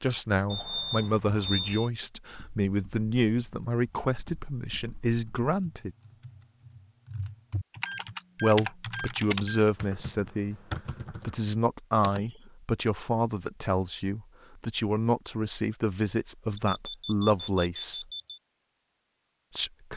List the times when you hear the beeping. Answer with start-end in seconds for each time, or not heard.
0.5-1.9, 7.8-9.6, 16.6-18.4.